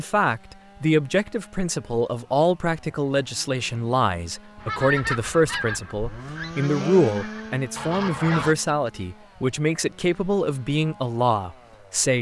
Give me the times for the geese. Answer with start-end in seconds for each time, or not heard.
4.6-8.6.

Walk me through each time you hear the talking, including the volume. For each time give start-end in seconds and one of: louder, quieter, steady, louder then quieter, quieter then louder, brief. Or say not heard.
0.0-12.1 steady.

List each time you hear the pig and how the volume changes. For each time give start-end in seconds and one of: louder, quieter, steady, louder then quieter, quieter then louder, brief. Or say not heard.
not heard.